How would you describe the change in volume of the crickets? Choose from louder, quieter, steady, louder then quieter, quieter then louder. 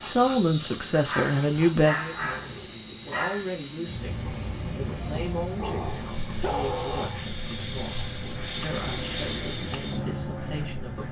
quieter.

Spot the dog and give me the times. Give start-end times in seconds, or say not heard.
0.9-3.5, 5.5-7.2.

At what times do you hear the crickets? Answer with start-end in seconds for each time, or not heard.
0.0-11.0.